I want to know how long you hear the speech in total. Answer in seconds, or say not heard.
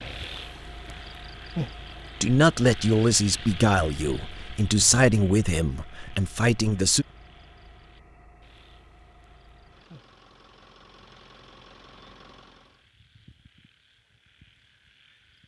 5 s.